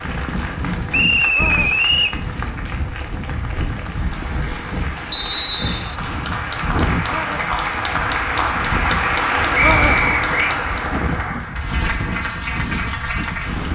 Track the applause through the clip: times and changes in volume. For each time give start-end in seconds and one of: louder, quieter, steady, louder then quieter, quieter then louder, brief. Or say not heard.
0.0-13.6 louder then quieter.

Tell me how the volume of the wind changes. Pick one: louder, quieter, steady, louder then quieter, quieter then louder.
steady.